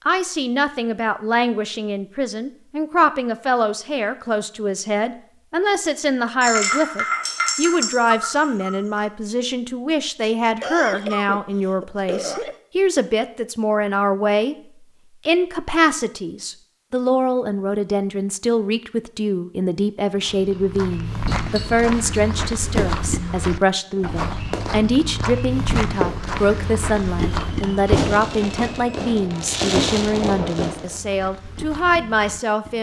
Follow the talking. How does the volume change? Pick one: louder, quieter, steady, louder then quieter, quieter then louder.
steady.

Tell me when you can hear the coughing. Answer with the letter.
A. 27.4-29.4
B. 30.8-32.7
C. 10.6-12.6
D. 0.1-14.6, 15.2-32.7
C.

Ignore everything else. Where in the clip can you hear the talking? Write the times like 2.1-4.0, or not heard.
0.1-14.6, 15.2-32.7.